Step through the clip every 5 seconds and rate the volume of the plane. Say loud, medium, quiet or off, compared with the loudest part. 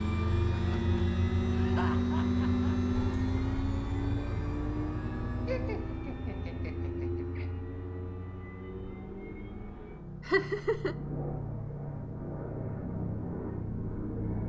loud, medium, medium.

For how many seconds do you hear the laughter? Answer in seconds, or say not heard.
4 s.